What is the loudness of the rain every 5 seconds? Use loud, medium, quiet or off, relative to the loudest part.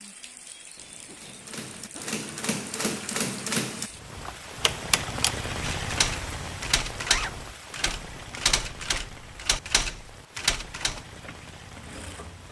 medium, loud, medium.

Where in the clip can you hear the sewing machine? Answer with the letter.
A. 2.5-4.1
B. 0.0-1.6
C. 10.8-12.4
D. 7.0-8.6
C.